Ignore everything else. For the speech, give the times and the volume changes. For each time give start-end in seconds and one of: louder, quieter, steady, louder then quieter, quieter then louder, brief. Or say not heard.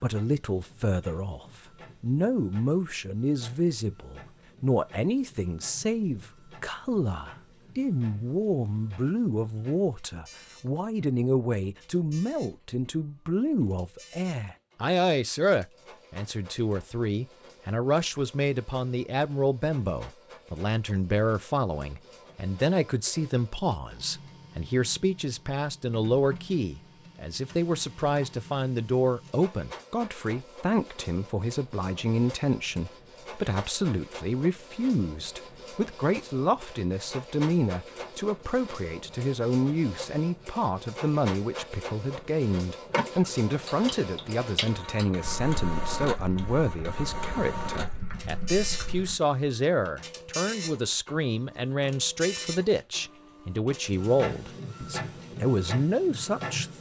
0.0-56.7 steady.